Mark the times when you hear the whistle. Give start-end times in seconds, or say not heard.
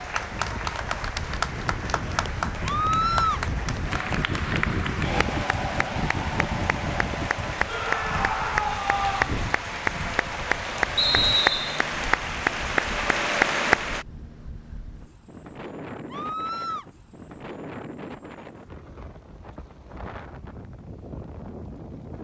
10.9-11.8.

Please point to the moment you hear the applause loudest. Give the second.
13 s.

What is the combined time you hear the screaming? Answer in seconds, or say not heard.
3 s.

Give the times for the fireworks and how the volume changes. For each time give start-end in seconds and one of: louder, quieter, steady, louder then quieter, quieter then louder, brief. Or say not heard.
not heard.